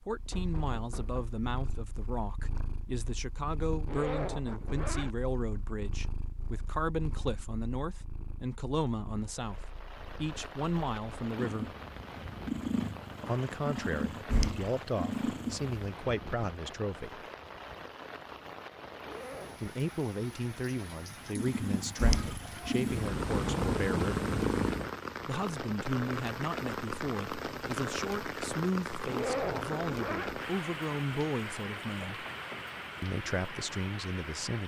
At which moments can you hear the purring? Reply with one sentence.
The purring can be heard from 0.0 to 15.8 s and from 21.2 to 24.9 s.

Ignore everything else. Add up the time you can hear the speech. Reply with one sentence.
The speech can be heard for 29 seconds in total.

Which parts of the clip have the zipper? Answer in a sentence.
The zipper can be heard from 3.9 to 5.2 s, from 19.0 to 19.8 s and from 29.1 to 30.4 s.